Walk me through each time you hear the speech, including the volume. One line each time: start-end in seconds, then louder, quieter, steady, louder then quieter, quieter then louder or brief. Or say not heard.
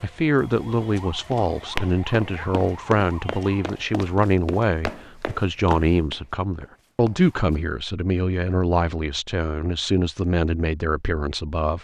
0.0-11.7 steady.